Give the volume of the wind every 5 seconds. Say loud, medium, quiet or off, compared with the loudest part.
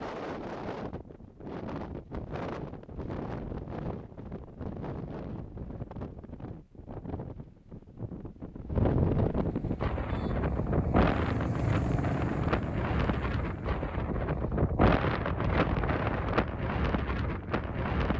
medium, loud, loud, loud.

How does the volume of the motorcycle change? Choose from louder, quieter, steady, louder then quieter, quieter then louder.
louder then quieter.